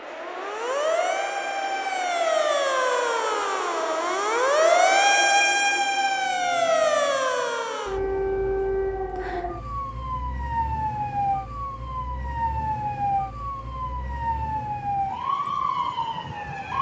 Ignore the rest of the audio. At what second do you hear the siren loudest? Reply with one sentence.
The volume of the siren peaks at 5 seconds.